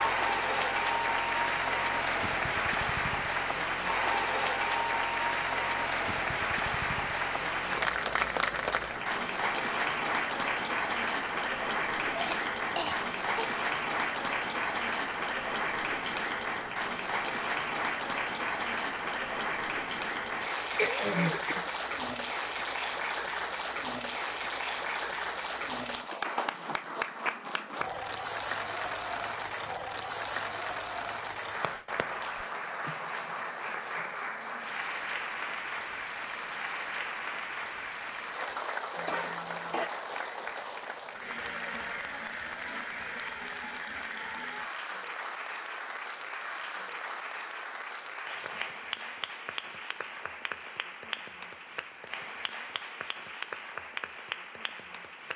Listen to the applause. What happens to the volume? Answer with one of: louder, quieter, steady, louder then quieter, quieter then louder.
quieter.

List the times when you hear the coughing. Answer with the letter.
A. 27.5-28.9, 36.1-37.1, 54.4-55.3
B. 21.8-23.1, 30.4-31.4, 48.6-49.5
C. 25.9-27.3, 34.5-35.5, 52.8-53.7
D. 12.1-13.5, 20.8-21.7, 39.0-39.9
D.